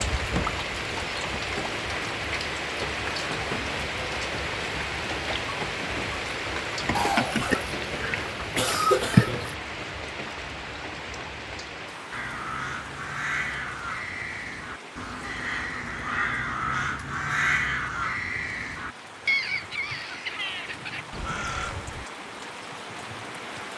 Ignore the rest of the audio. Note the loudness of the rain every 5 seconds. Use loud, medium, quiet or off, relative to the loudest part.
loud, loud, medium, quiet, medium.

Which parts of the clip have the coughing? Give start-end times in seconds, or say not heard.
7.0-9.6.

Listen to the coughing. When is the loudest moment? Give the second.
9 s.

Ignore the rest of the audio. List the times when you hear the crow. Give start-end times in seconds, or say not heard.
12.1-22.1.